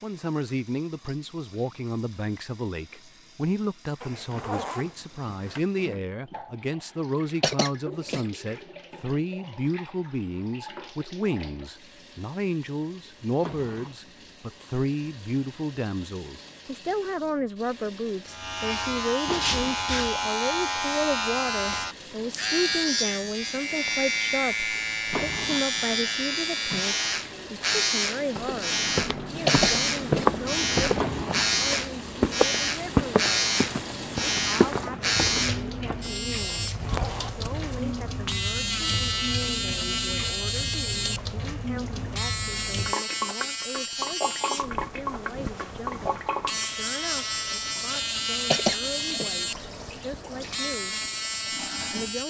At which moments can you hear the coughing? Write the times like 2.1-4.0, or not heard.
7.4-8.2, 29.4-30.3, 48.5-49.3.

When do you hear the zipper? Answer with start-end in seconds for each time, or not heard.
4.0-5.7, 36.6-37.4.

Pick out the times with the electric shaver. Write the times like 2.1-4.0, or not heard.
18.2-52.2.